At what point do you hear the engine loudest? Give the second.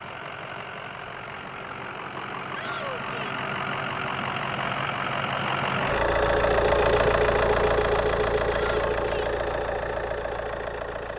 7 s.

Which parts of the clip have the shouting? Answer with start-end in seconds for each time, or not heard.
2.5-3.4, 8.5-9.3.